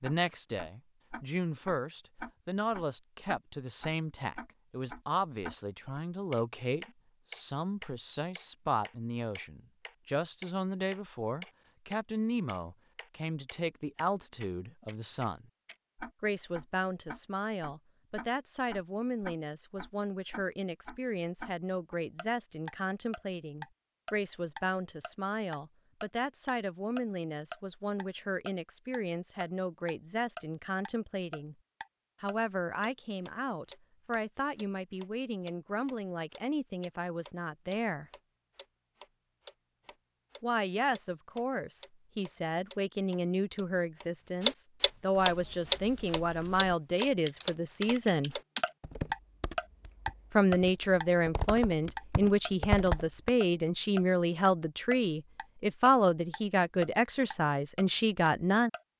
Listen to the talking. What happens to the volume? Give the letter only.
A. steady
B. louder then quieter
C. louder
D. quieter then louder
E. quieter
C.